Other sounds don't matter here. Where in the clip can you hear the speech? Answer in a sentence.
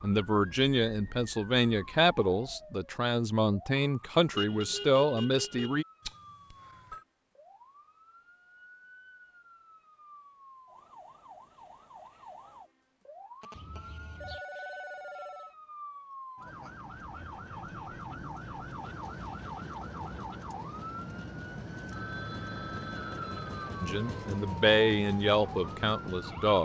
You can hear the speech from 0.0 to 5.8 s and from 23.8 to 26.6 s.